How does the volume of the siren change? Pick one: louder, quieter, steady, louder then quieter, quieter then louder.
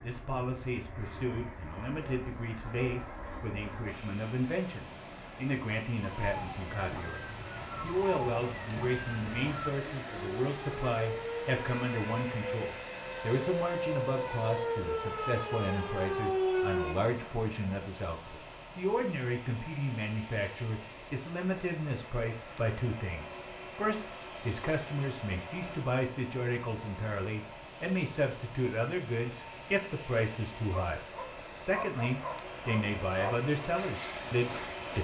louder.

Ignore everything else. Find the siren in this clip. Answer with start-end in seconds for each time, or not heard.
6.2-16.9.